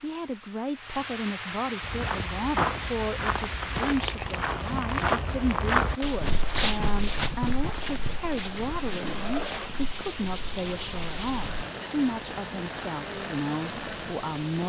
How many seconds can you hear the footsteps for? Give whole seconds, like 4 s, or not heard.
10 s.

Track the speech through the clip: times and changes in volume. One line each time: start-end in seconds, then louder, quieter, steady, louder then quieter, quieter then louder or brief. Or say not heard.
0.0-14.6 steady.